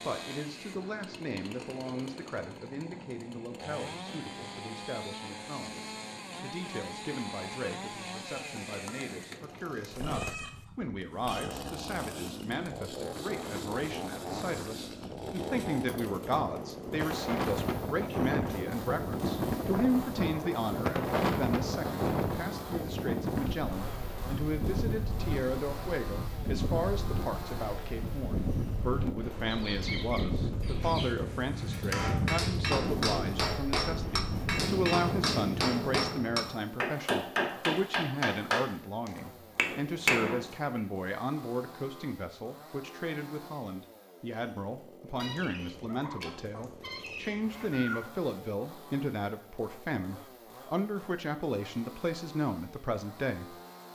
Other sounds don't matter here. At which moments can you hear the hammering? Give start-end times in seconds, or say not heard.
31.7-40.8.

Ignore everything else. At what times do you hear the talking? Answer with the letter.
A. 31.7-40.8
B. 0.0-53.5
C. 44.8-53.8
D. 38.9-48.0
B.